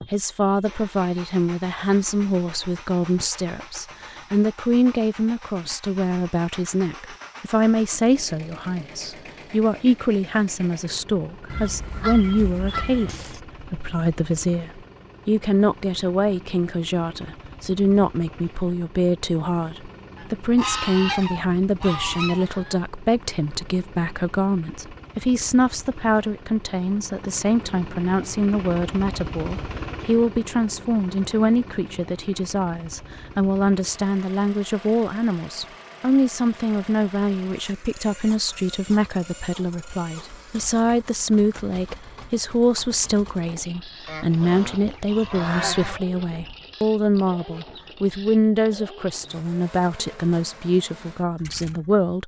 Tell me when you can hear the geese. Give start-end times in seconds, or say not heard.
11.5-13.4, 20.1-22.8, 44.0-46.0.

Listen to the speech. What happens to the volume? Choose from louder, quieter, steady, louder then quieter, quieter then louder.
steady.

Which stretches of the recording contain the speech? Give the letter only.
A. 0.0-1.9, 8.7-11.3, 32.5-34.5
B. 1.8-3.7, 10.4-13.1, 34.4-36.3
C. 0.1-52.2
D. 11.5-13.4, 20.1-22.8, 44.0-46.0
C.